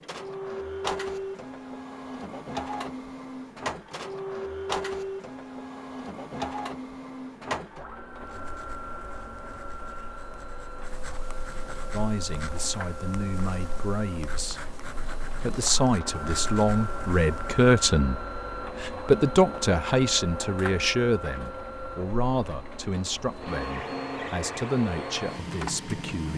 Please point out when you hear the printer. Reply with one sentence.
You can hear the printer from 0.0 to 26.3 s.